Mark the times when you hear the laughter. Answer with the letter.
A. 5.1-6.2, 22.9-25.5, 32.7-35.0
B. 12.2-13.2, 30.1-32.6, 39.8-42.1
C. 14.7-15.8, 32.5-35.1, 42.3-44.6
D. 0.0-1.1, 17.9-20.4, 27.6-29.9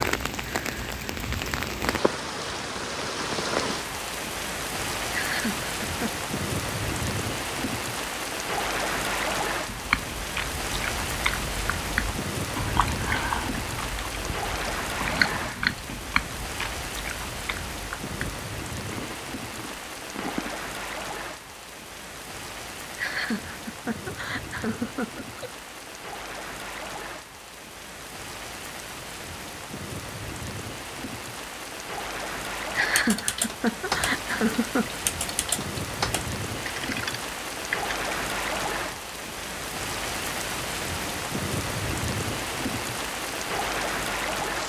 A.